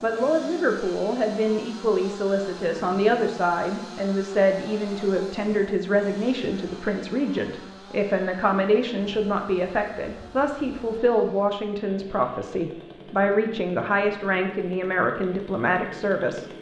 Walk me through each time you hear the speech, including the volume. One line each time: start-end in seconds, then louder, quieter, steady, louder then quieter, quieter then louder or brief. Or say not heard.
0.0-16.4 steady.